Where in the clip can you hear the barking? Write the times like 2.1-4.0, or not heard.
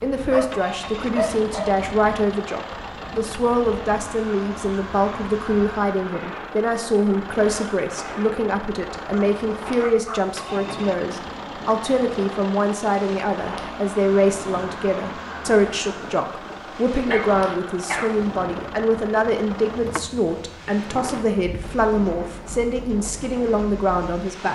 0.2-1.8, 9.1-10.3, 16.9-18.2.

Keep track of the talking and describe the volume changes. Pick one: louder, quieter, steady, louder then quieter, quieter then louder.
steady.